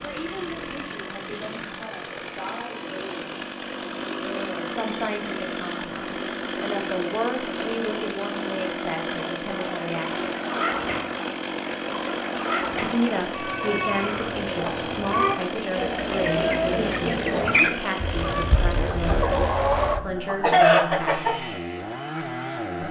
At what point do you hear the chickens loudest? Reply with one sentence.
The volume of the chickens peaks at 21 seconds.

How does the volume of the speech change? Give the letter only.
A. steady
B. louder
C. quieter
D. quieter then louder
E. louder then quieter
B.